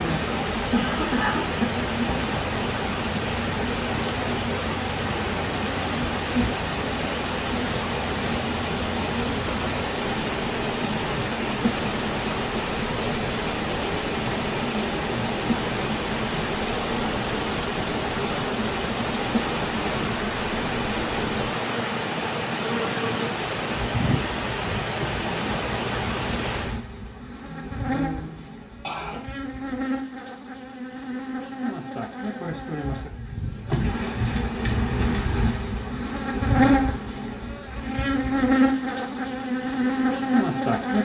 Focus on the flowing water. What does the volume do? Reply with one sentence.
The loudness of the flowing water stays about the same.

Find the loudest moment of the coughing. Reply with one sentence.
The loudest moment of the coughing is at 1 second.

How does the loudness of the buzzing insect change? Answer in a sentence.
The volume of the buzzing insect goes up.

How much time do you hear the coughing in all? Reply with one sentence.
The coughing can be heard for 3 seconds in total.